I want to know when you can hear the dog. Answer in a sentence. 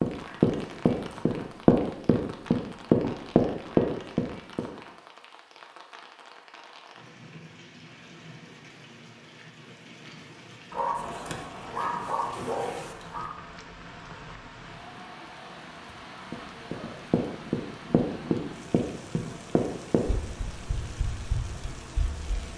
You can hear the dog from 10.7 to 13.3 s.